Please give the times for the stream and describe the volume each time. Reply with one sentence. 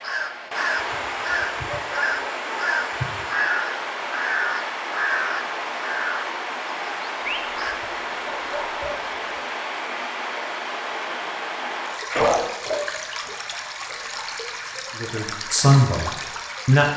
The stream can be heard from 0.0 to 16.9 s, at a steady volume.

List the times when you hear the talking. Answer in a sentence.
You can hear the talking from 14.9 to 16.9 s.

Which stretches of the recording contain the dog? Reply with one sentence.
You can hear the dog from 0.7 to 3.4 s, from 7.2 to 9.4 s and from 12.1 to 13.3 s.